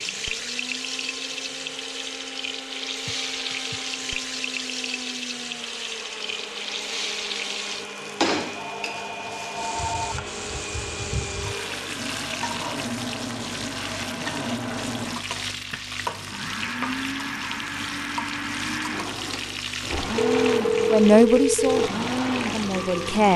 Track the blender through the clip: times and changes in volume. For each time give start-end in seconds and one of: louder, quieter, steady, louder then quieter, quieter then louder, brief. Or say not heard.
0.0-23.3 louder.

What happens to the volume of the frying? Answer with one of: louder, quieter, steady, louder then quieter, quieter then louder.
steady.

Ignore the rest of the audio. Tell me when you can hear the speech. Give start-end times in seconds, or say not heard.
20.9-23.3.